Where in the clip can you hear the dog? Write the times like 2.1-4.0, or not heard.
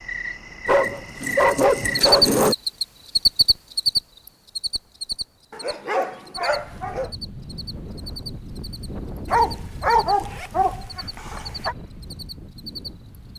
0.7-2.5, 5.5-7.1, 9.3-11.8.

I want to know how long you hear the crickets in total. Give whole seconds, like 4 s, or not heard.
13 s.